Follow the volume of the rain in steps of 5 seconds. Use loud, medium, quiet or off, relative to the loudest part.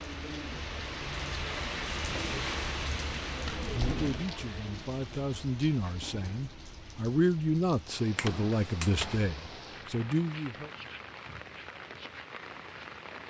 loud, medium, medium.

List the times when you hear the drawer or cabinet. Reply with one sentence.
The drawer or cabinet can be heard from 3.5 to 4.2 s and from 8.2 to 9.3 s.